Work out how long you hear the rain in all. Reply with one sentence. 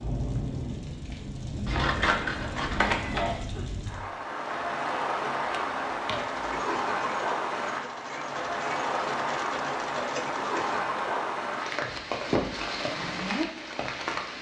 The rain can be heard for 14 seconds in total.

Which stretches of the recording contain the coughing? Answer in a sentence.
The coughing can be heard from 2.9 to 3.6 s.